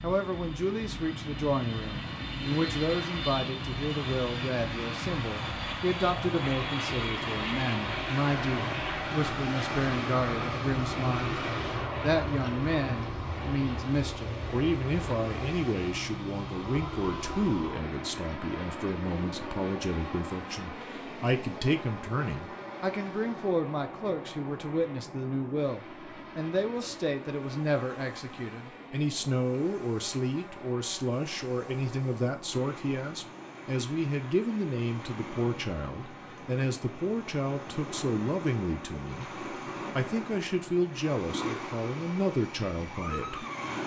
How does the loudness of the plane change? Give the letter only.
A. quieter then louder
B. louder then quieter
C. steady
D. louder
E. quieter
E.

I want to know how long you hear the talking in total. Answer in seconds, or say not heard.
43 s.